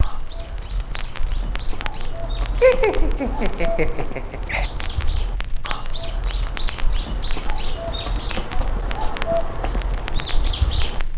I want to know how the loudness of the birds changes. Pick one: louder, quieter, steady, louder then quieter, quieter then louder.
louder.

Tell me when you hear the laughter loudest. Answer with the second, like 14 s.
3 s.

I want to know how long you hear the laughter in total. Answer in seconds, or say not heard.
2 s.